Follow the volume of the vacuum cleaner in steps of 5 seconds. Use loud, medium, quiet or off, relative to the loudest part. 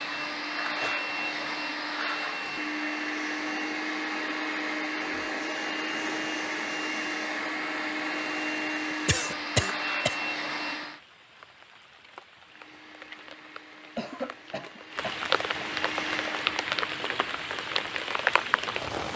loud, loud, medium, medium.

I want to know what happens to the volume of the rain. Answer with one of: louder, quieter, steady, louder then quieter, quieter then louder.
louder.